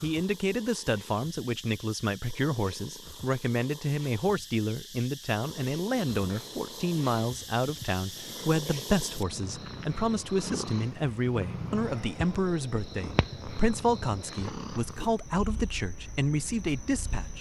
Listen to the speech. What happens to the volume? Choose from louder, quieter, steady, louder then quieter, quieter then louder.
steady.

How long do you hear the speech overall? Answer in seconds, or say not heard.
17 s.